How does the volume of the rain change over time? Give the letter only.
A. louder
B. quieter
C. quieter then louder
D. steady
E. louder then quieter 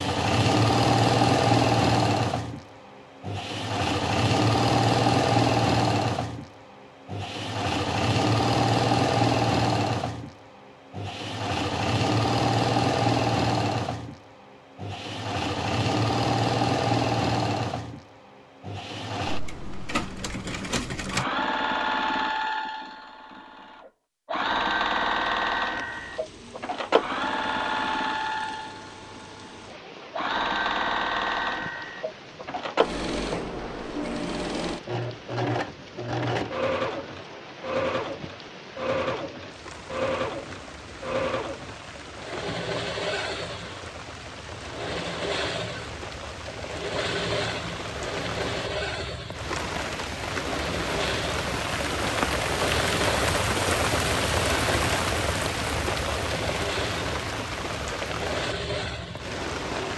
A.